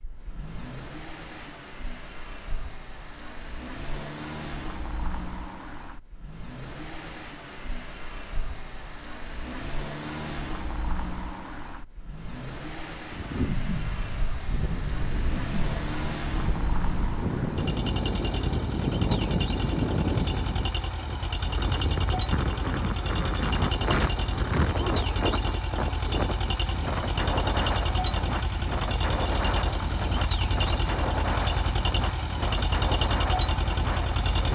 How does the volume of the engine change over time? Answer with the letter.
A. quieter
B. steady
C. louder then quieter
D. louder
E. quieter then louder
D.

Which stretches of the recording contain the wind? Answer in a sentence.
You can hear the wind from 13.1 to 34.4 s.